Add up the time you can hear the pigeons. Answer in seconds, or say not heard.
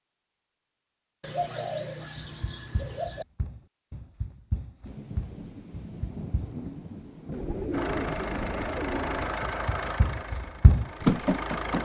4 s.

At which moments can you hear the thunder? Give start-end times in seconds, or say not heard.
4.8-8.7.